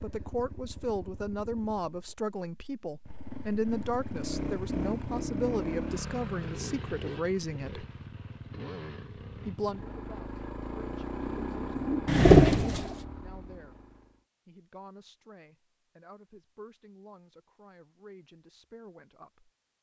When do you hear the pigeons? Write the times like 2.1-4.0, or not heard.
11.2-13.1.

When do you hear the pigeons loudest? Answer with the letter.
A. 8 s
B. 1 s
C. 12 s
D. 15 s
C.